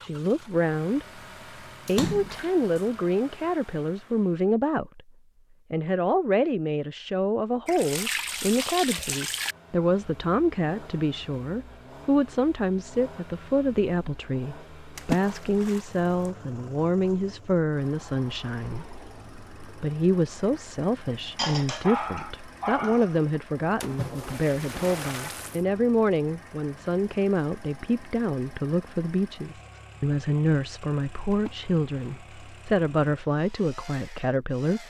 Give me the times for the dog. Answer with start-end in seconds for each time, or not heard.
21.4-23.2.